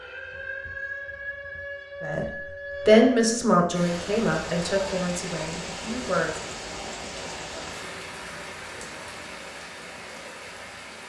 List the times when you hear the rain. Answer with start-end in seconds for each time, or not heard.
3.7-11.0.